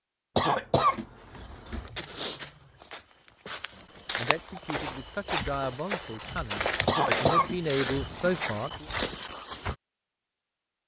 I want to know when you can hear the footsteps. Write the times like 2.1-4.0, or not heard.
1.5-9.8.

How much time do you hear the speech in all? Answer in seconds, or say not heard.
5 s.